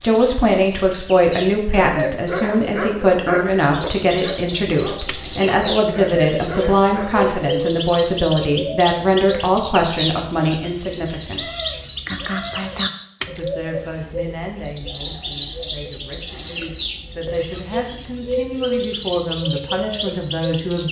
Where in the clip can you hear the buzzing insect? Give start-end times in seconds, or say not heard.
not heard.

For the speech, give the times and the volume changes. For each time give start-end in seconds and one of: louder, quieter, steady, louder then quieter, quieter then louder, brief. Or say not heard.
0.0-11.5 steady
13.2-20.8 quieter then louder.